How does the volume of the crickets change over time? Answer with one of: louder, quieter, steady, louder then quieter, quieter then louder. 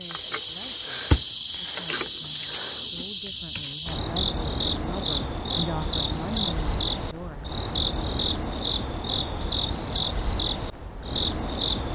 steady.